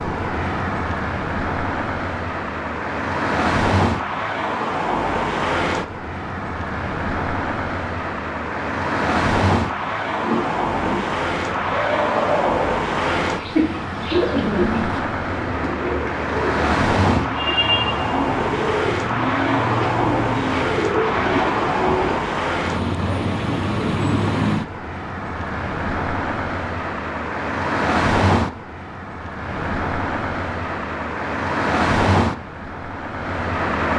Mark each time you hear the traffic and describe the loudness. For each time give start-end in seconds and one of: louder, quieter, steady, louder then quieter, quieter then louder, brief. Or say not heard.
0.0-33.9 steady.